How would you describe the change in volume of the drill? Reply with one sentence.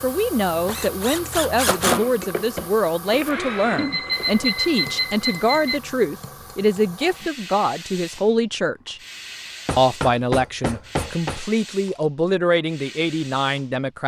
The loudness of the drill goes up, then down.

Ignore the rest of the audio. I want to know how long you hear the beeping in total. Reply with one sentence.
You can hear the beeping for 2 seconds altogether.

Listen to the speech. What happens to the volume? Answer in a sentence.
The loudness of the speech stays about the same.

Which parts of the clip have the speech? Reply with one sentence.
You can hear the speech from 0.0 to 9.0 s and from 9.8 to 14.0 s.